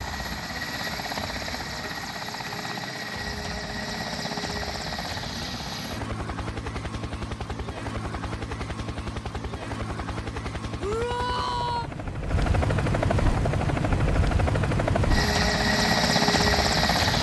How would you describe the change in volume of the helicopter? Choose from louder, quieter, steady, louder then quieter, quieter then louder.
louder.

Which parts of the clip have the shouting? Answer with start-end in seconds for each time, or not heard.
10.8-11.9.